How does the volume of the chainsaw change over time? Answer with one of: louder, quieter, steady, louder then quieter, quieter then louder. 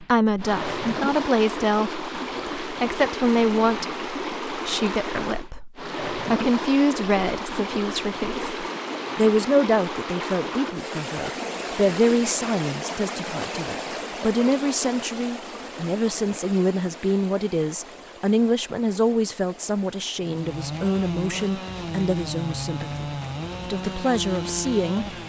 steady.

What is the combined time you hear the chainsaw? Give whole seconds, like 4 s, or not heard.
5 s.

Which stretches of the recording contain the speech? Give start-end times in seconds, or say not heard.
0.0-25.1.